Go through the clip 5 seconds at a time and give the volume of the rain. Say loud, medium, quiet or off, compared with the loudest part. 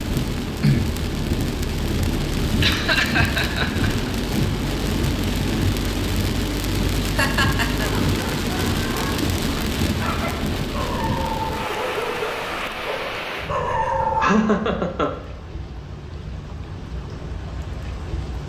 loud, loud, medium, quiet.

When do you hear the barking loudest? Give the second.
14 s.